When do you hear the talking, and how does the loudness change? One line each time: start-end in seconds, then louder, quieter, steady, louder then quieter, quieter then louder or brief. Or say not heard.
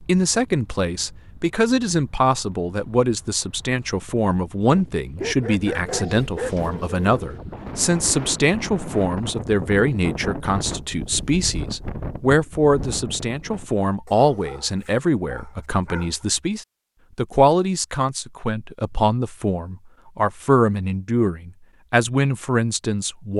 0.0-23.3 steady.